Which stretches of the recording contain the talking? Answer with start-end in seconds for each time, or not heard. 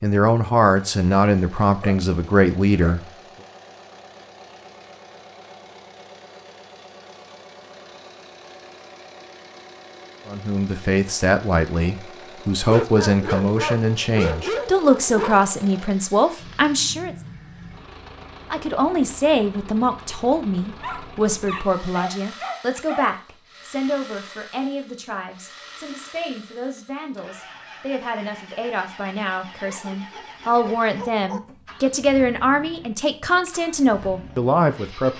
0.0-3.0, 10.2-17.1, 18.5-35.1.